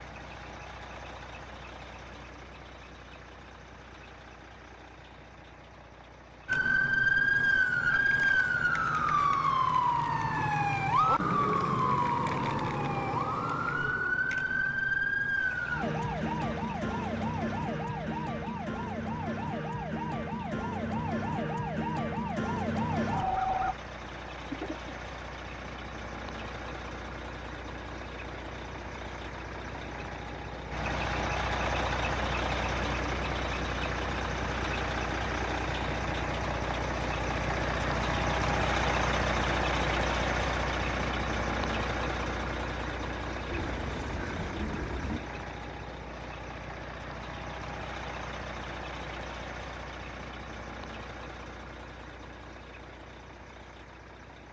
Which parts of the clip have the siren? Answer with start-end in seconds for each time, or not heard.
6.5-23.8.